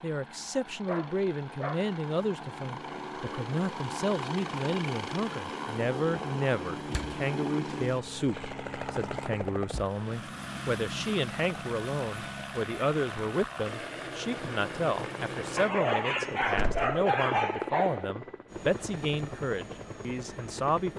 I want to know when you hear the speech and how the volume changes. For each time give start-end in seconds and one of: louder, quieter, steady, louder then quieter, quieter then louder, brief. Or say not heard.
0.0-20.9 steady.